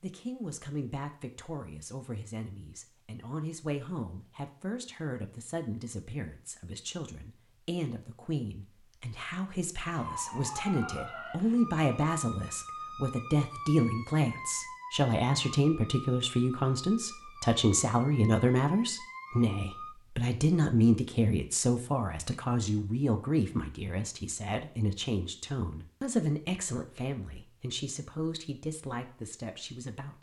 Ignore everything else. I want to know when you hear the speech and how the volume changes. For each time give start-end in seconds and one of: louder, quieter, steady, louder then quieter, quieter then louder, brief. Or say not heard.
0.0-30.1 louder then quieter.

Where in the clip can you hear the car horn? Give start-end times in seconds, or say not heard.
not heard.